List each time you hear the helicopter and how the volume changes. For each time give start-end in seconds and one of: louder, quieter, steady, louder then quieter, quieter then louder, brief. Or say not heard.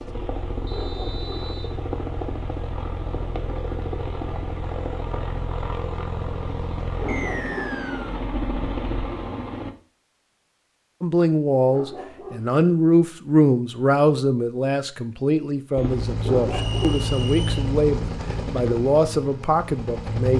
0.0-9.7 steady
15.8-20.3 quieter.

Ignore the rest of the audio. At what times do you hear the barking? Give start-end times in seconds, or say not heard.
0.7-1.3, 7.0-7.8, 11.7-12.5, 16.2-17.1.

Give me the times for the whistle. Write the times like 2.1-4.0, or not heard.
0.7-1.7, 7.0-8.2, 16.5-17.7.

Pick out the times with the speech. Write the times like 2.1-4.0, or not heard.
11.0-20.3.